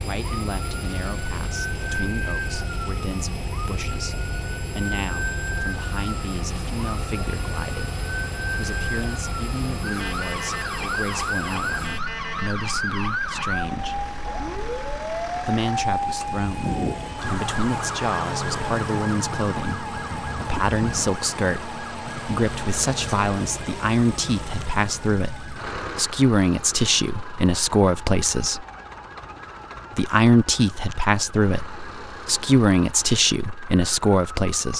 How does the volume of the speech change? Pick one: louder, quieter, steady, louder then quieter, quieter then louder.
louder.